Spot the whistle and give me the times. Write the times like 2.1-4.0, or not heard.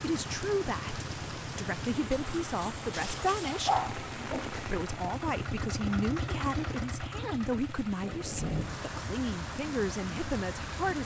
not heard.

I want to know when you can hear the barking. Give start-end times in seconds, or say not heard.
2.9-4.5.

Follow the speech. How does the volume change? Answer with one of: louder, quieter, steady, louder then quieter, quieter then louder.
steady.